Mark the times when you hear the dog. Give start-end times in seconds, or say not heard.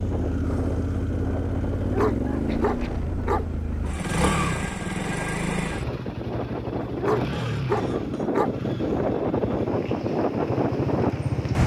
1.8-3.9, 6.8-8.5.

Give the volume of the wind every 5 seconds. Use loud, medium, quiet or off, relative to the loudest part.
medium, loud, loud.